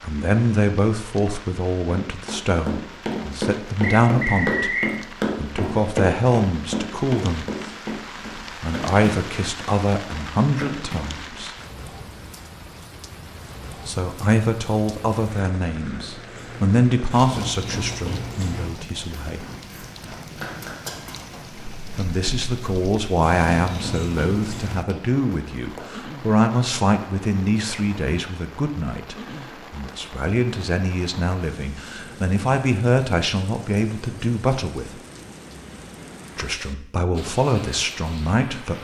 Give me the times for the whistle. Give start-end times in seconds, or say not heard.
3.8-5.0.